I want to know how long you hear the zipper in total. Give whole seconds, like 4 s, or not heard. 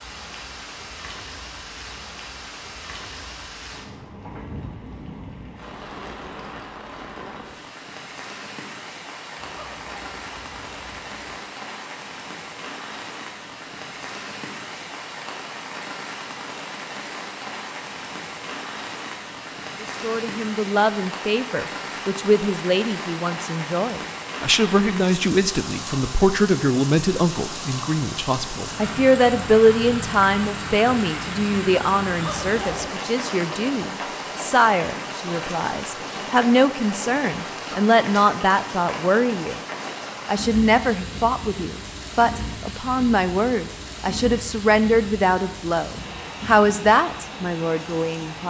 3 s.